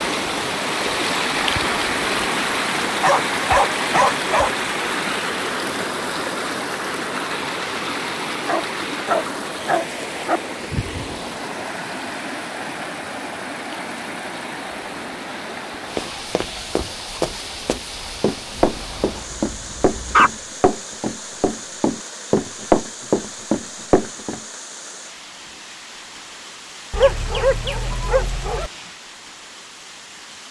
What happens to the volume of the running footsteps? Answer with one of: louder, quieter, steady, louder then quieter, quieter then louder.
louder.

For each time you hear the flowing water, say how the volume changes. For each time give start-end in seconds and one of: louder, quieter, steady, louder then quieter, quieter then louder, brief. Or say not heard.
0.0-30.4 quieter.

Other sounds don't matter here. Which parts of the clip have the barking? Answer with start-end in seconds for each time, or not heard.
3.0-4.5, 8.4-10.4, 18.6-20.3, 26.9-28.7.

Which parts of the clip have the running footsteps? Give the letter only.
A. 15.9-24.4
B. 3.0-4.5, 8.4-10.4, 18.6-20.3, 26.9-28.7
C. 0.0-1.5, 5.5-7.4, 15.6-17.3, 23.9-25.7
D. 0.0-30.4
A.